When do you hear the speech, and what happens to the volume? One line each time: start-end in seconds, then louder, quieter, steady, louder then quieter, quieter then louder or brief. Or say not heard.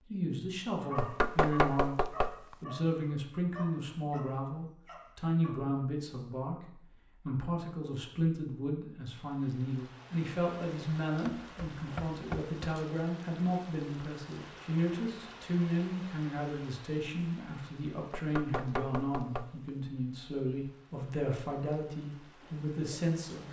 0.1-23.4 steady.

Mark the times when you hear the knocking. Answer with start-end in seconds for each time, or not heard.
0.9-2.5, 11.2-12.6, 18.1-19.7.